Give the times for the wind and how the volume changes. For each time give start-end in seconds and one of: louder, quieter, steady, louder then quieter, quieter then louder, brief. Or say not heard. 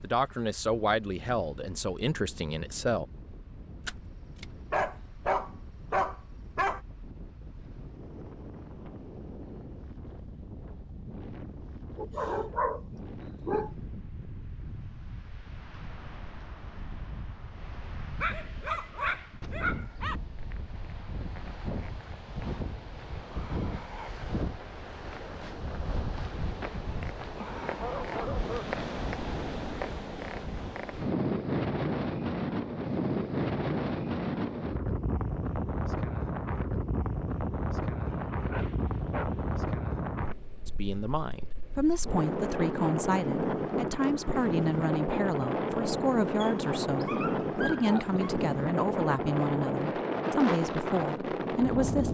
0.0-52.0 louder.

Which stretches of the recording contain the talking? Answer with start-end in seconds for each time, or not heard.
0.0-3.0, 40.6-52.0.